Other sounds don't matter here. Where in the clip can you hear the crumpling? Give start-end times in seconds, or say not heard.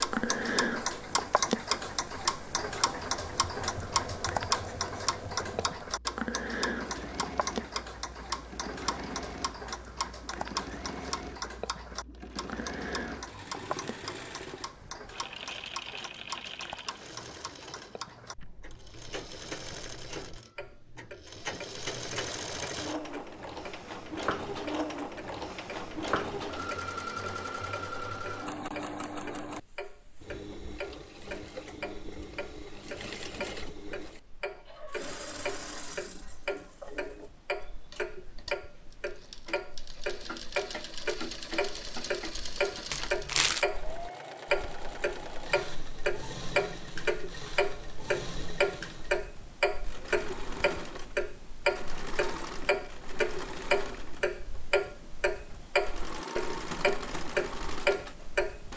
42.9-43.6.